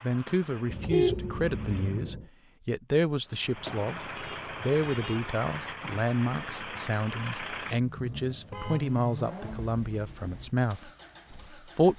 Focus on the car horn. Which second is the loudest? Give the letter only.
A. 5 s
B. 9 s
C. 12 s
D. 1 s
D.